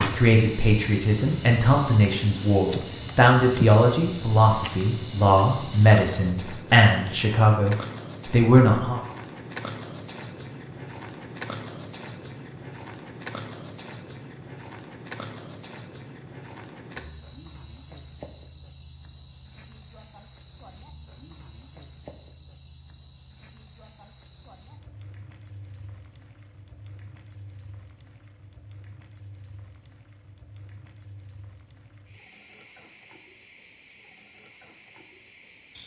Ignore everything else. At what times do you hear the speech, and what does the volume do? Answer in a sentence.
The speech can be heard from 0.1 to 9.0 s, at a steady volume.